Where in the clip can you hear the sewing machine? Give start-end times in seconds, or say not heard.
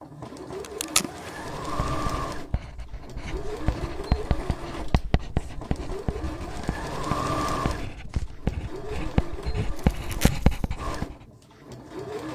0.0-12.2.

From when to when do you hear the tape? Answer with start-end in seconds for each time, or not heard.
0.6-1.4, 9.8-10.7.